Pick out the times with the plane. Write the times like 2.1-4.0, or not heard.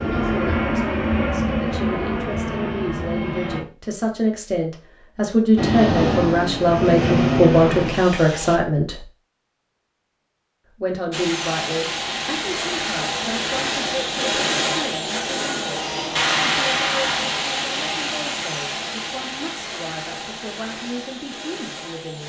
0.0-3.6, 5.5-8.6, 11.1-22.2.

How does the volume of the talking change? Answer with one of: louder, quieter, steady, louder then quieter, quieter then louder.
louder then quieter.